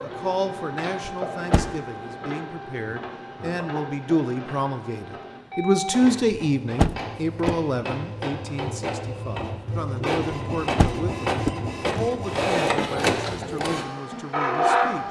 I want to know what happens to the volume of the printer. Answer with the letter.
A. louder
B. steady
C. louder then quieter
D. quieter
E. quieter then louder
A.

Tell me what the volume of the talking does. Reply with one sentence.
The loudness of the talking goes up, then down.